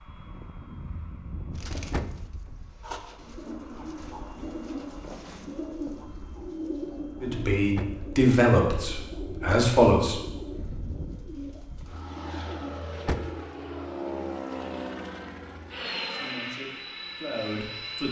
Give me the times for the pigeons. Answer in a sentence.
You can hear the pigeons from 1.5 to 13.7 s.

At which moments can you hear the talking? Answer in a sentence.
You can hear the talking from 7.2 to 10.2 s and from 16.1 to 18.0 s.